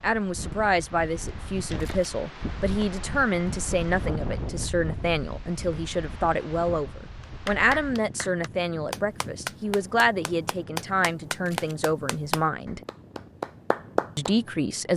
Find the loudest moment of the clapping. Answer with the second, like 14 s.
14 s.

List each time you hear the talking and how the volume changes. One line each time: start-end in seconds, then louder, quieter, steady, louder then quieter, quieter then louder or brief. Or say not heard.
0.0-12.8 steady
14.2-14.9 brief.